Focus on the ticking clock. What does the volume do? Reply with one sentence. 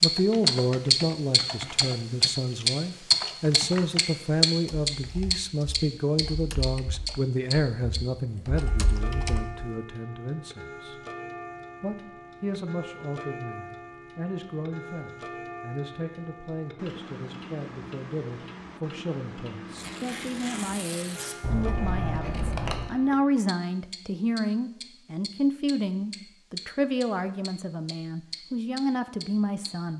The loudness of the ticking clock goes down.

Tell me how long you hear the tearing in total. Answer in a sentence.
You can hear the tearing for 2 seconds altogether.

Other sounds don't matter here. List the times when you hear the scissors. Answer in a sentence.
You can hear the scissors from 21.4 to 22.9 s.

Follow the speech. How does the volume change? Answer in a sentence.
The volume of the speech goes down, then up.